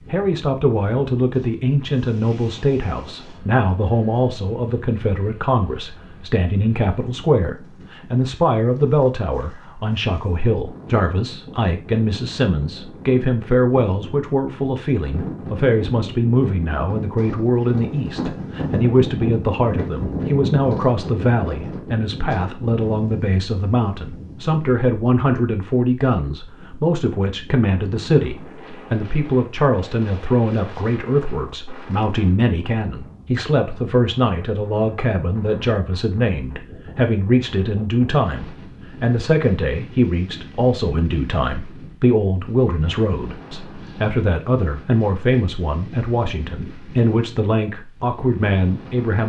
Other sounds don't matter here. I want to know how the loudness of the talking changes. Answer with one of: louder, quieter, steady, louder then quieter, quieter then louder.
steady.